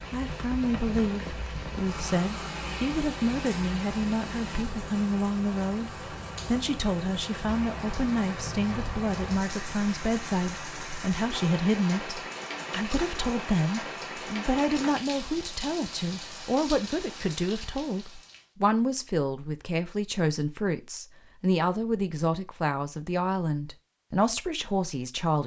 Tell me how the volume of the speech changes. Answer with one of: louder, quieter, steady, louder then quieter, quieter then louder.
steady.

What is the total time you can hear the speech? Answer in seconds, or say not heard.
25 s.